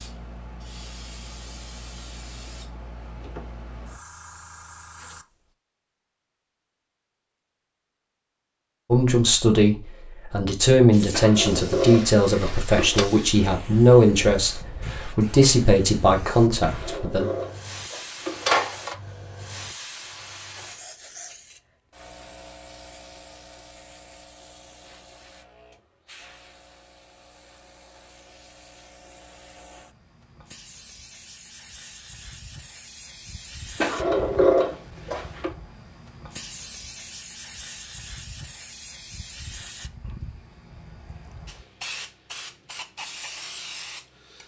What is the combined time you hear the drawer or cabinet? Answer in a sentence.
You can hear the drawer or cabinet for 6 seconds altogether.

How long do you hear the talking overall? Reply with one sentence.
You can hear the talking for 8 seconds altogether.